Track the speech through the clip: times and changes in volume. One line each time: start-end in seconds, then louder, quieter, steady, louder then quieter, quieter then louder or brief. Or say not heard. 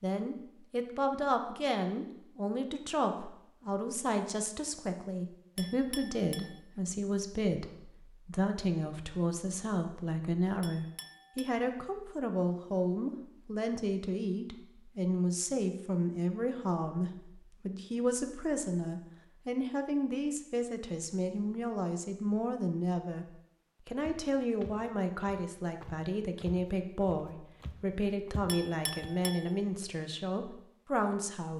0.0-23.2 steady
23.9-31.5 steady.